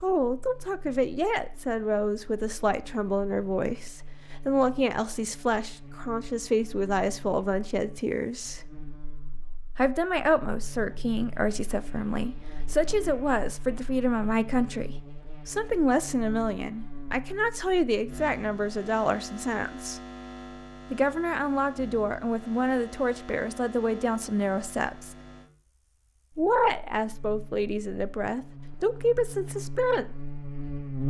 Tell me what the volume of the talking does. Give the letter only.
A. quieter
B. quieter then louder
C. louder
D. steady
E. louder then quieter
D.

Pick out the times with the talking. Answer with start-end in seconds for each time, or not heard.
0.0-8.7, 9.8-20.0, 20.9-25.1, 26.4-30.1.